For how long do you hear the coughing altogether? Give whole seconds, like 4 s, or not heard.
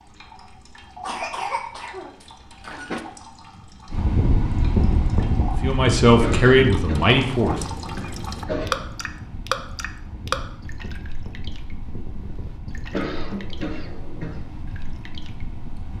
6 s.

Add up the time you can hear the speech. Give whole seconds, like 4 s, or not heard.
2 s.